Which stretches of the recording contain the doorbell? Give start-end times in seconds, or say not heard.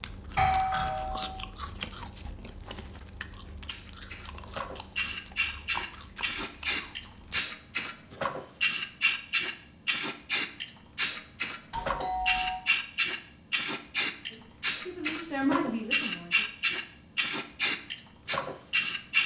0.3-1.4, 11.7-12.6.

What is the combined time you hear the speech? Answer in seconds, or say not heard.
2 s.